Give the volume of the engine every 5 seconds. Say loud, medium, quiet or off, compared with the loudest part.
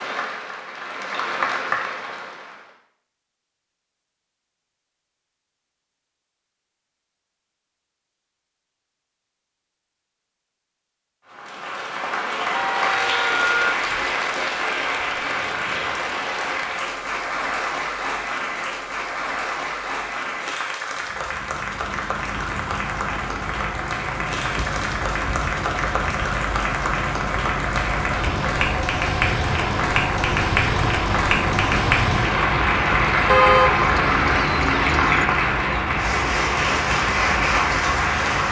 off, off, off, off, medium, loud, loud, loud.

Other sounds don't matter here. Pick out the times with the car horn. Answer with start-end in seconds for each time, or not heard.
12.5-14.1, 33.2-35.2.